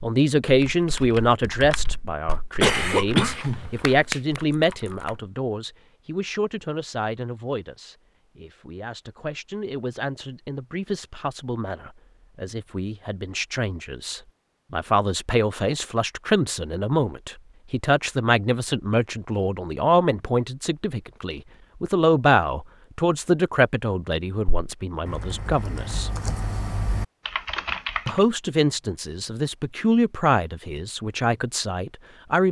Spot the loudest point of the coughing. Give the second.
3 s.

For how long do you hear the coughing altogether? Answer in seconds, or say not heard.
2 s.